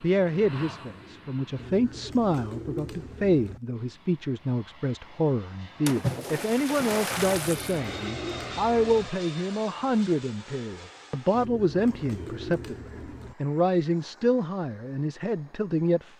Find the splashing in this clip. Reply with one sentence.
You can hear the splashing from 5.8 to 7.8 s.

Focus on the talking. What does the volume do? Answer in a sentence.
The loudness of the talking stays about the same.